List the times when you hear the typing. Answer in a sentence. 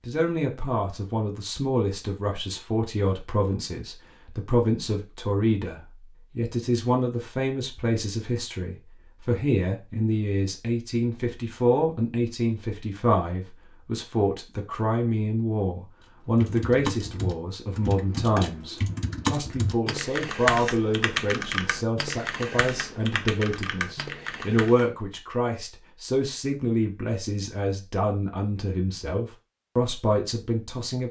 The typing can be heard from 16.4 to 24.9 s.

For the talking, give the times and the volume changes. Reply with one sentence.
The talking can be heard from 0.1 to 31.0 s, at a steady volume.